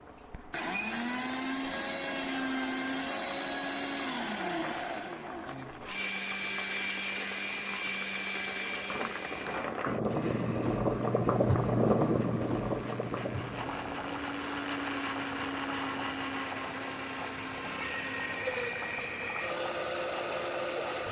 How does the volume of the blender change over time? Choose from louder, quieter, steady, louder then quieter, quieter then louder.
quieter then louder.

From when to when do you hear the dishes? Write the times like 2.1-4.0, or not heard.
not heard.